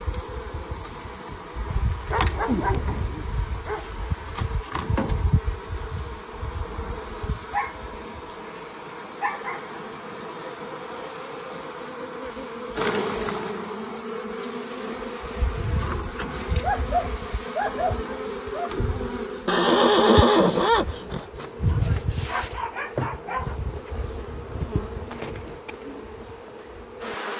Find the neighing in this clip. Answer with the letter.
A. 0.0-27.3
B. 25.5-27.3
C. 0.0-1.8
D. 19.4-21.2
D.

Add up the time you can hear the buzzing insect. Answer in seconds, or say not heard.
27 s.